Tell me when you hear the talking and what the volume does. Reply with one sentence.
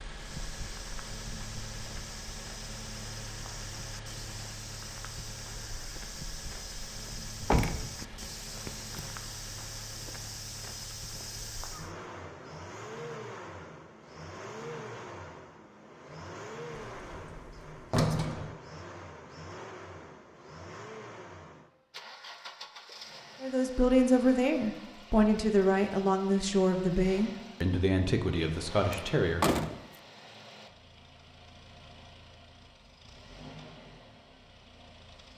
The talking can be heard from 23.4 to 29.4 s, getting quieter.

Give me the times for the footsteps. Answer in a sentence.
You can hear the footsteps from 0.1 to 11.9 s.